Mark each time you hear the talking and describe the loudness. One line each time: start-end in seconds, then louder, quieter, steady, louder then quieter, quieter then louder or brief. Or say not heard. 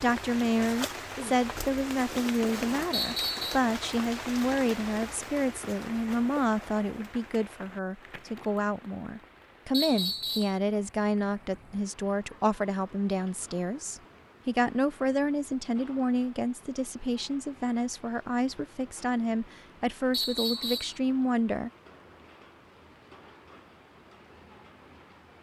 0.0-21.7 steady.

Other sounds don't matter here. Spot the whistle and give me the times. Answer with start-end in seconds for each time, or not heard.
2.9-3.6, 9.7-10.6, 20.1-20.9.